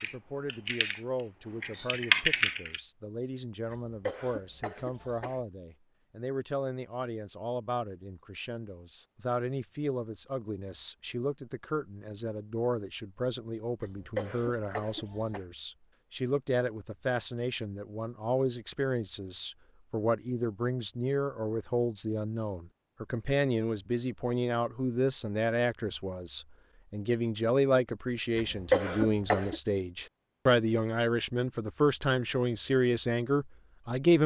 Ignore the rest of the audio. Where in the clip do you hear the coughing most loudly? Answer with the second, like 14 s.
29 s.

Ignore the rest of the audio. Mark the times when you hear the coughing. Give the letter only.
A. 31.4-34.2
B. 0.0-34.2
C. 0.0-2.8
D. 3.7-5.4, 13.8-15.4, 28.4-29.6
D.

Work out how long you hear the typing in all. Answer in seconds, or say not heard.
3 s.